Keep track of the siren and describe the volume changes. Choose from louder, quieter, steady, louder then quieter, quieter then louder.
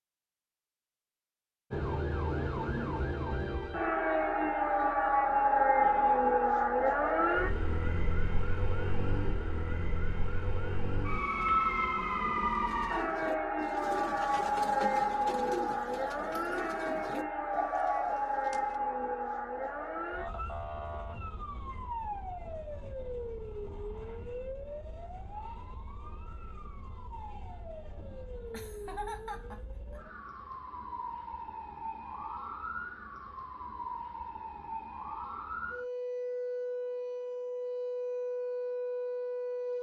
quieter then louder.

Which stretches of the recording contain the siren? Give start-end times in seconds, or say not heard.
1.7-39.7.